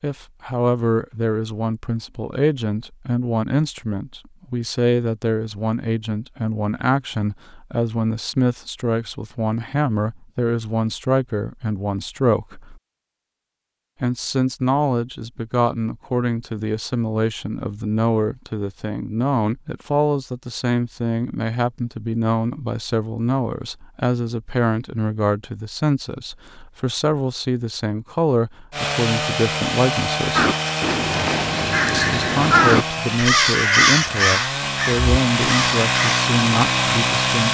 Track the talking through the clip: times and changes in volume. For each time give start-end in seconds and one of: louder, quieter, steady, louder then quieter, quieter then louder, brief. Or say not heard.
0.0-12.8 steady
14.0-30.4 steady
31.9-37.4 steady.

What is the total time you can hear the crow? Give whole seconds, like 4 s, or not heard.
6 s.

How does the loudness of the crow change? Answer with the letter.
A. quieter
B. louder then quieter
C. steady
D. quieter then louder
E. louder
B.